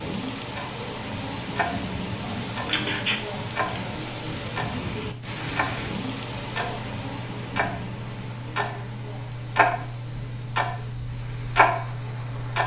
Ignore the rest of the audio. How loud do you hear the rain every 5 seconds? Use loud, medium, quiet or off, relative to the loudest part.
loud, loud, quiet.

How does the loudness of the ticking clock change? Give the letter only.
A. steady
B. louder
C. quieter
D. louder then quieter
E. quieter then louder
B.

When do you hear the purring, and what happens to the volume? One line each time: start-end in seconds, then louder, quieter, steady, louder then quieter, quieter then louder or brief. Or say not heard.
not heard.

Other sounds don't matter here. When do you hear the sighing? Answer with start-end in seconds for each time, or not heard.
2.2-3.2.